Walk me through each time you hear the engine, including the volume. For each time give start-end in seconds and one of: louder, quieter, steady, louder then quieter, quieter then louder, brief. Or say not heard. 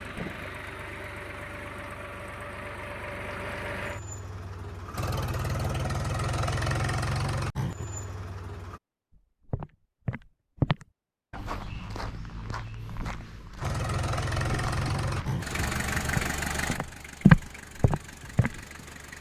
0.0-8.8 louder
13.6-19.1 quieter.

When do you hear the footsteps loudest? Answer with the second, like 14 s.
17 s.